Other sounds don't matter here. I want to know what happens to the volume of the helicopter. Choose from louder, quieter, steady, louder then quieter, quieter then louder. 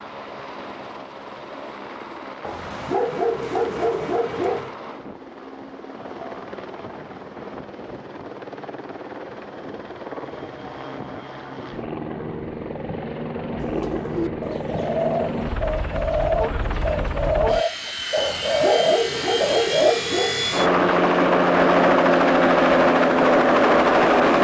louder.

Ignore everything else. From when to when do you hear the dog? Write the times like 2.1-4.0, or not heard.
2.4-4.8, 18.1-20.8.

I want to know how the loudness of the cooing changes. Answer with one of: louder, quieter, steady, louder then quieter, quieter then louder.
louder.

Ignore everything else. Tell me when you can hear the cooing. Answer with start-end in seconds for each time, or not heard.
13.6-19.9.